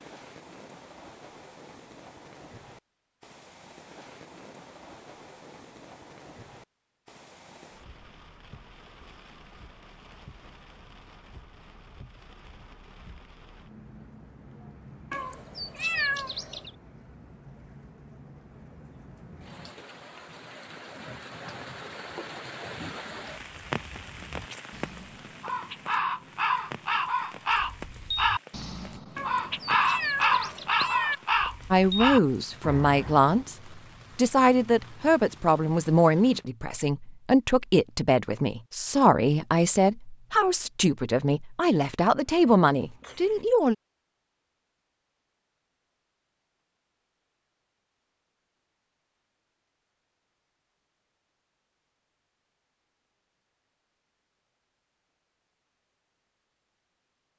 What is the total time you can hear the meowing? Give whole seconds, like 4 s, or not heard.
5 s.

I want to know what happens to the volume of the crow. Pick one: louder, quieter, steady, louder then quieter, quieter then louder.
louder.